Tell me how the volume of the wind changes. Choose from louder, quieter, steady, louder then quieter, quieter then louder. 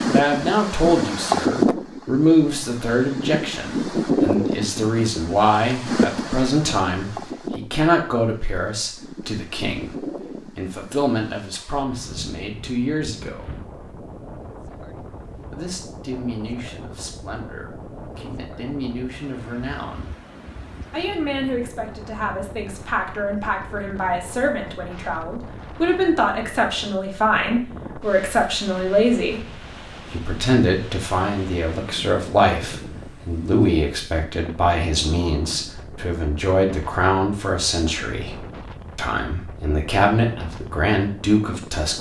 quieter.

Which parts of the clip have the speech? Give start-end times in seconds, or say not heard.
0.1-13.5, 15.5-20.1, 20.9-29.4, 30.1-41.9.